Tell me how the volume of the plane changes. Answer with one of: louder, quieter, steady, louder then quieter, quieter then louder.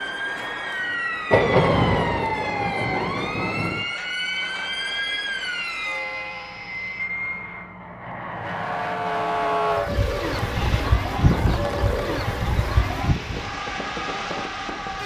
steady.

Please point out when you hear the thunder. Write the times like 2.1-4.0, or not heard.
1.3-3.9.